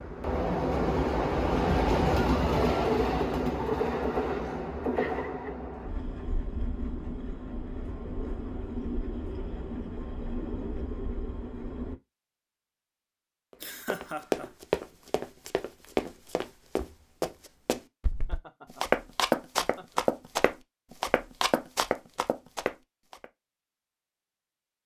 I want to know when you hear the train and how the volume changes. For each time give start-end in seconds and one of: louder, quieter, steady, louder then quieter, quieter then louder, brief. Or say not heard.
0.0-11.9 quieter.